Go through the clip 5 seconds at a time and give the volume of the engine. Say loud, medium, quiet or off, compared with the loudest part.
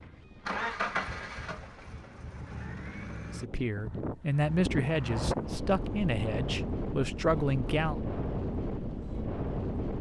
loud, off.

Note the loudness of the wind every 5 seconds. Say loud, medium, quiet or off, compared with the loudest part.
medium, loud.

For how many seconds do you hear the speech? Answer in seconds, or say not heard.
5 s.